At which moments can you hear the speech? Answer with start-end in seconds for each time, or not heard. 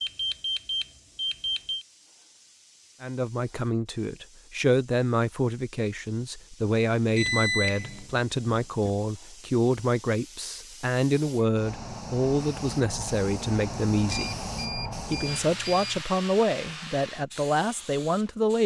3.0-14.4, 15.1-18.6.